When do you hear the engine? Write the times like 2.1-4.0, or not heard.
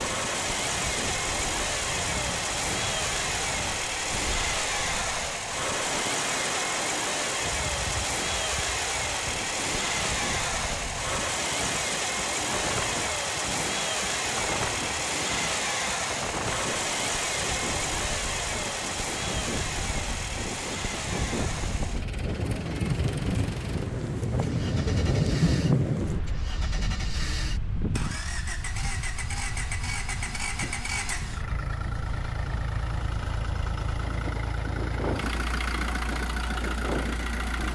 0.0-37.6.